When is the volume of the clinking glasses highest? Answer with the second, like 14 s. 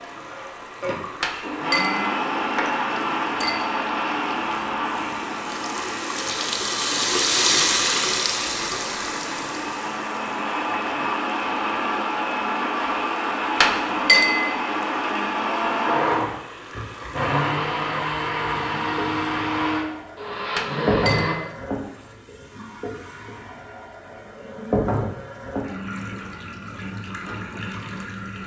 14 s.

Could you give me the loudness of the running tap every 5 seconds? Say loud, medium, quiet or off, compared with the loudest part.
quiet, loud, quiet, quiet, medium, medium.